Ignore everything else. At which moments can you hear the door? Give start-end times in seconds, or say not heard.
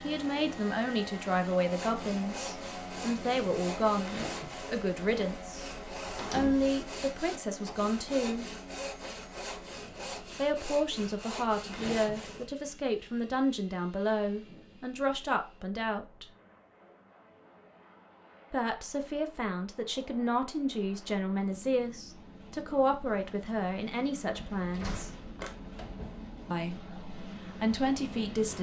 6.2-6.8, 24.4-26.3.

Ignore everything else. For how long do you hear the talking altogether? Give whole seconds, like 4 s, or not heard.
22 s.